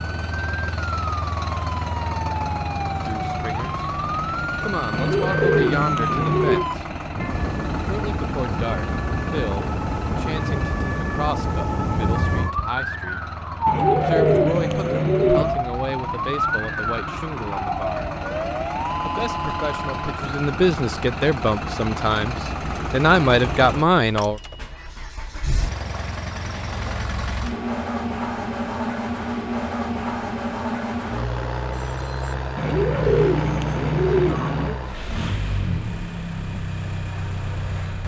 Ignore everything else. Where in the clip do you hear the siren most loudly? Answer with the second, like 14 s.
14 s.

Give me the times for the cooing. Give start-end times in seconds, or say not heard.
4.9-6.7, 13.7-15.6, 32.5-34.8.